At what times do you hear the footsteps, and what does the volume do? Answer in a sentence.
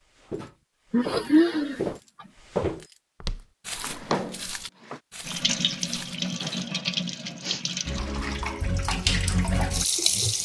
The footsteps can be heard from 0.1 to 6.7 s, getting louder then quieter.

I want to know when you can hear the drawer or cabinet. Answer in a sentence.
The drawer or cabinet can be heard from 3.7 to 5.0 s.